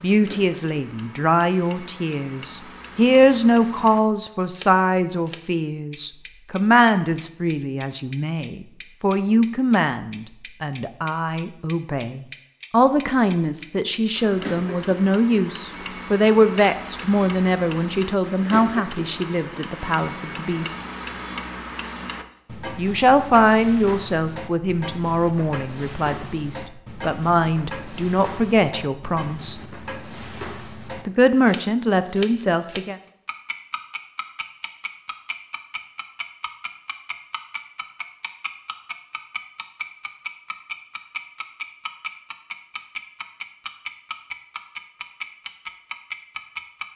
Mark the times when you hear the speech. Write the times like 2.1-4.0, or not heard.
0.0-20.8, 22.8-29.6, 31.1-33.0.